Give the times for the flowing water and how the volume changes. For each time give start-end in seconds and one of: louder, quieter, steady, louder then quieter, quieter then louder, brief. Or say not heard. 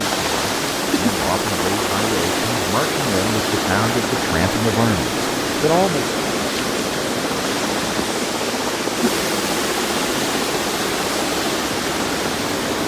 0.0-12.8 steady.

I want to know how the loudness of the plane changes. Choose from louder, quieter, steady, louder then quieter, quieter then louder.
steady.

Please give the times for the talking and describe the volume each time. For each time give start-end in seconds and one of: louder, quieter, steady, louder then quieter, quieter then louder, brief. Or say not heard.
0.2-6.1 louder.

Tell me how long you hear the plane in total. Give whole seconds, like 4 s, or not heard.
13 s.